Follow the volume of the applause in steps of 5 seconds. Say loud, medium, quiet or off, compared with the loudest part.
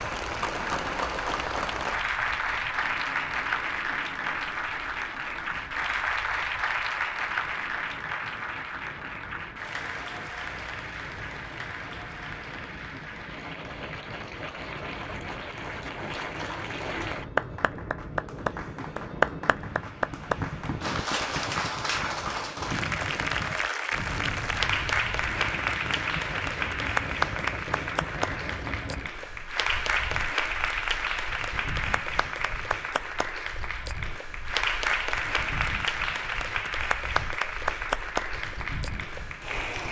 loud, loud, medium, loud, loud, loud, loud, loud.